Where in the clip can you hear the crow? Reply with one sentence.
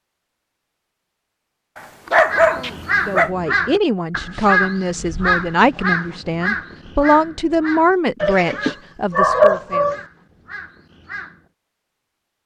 You can hear the crow from 2.2 to 11.4 s.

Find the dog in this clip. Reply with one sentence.
You can hear the dog from 1.8 to 3.3 s and from 8.2 to 10.0 s.